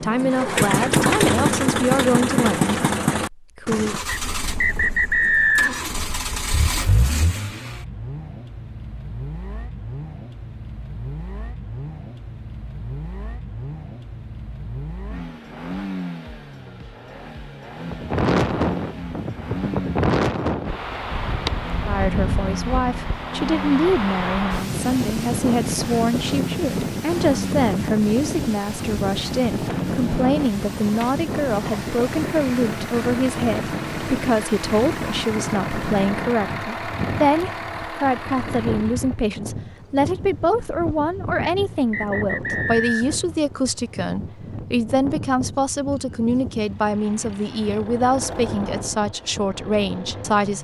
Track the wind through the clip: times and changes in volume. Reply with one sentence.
The wind can be heard from 17.9 to 50.5 s, getting quieter.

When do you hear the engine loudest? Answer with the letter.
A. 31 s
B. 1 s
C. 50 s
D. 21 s
B.